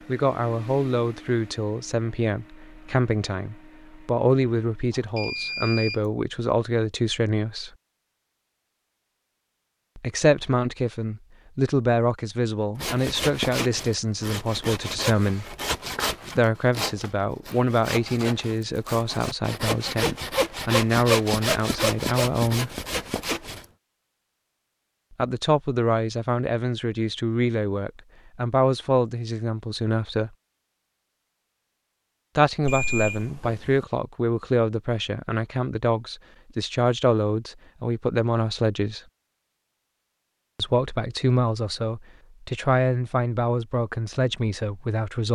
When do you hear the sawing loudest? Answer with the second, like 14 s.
21 s.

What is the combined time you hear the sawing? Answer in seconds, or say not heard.
11 s.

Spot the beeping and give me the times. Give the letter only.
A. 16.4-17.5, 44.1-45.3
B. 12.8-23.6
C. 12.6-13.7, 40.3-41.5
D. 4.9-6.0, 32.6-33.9
D.